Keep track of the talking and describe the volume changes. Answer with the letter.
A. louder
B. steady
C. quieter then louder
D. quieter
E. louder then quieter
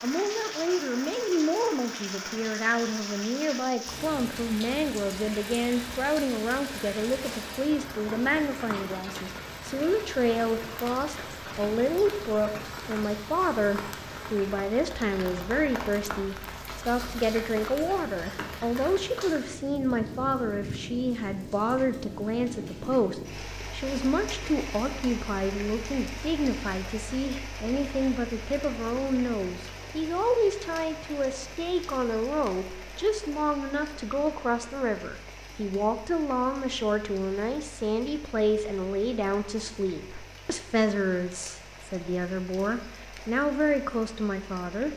B.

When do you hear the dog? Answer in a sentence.
You can't hear the dog here.